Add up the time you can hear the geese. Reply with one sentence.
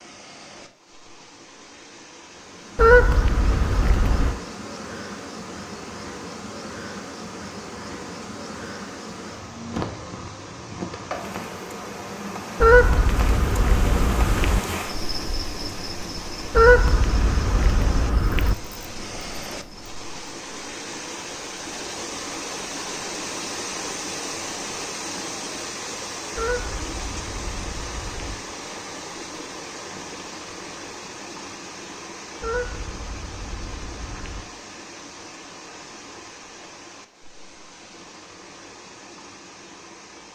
You can hear the geese for 10 seconds altogether.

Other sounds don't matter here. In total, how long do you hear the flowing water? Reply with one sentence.
The flowing water can be heard for 40 seconds in total.